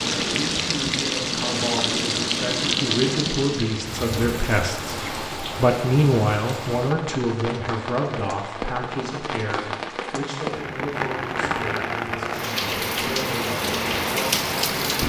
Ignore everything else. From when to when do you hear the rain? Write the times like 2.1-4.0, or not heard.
0.0-15.0.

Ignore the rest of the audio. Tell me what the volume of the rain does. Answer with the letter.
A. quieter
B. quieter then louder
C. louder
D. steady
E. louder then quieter
B.